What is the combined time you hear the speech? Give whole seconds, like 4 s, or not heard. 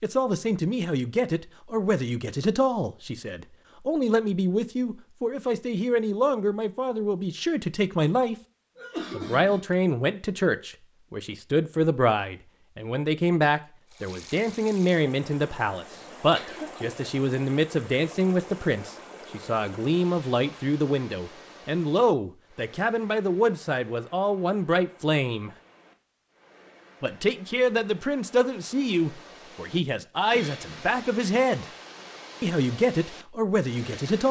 31 s.